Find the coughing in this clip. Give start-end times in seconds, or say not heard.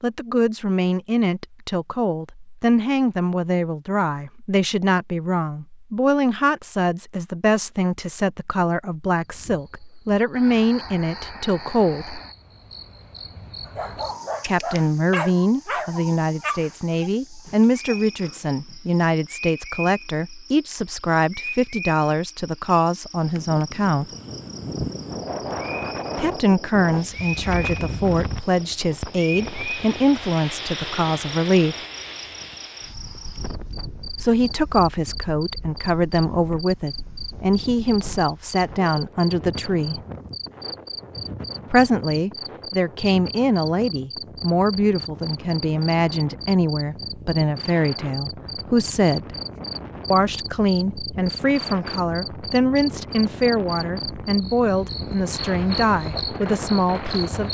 not heard.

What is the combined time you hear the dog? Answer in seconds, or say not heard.
5 s.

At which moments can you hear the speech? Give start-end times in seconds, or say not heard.
0.0-12.2, 14.4-24.1, 26.1-31.8, 34.1-40.0, 41.7-49.4, 50.1-57.4.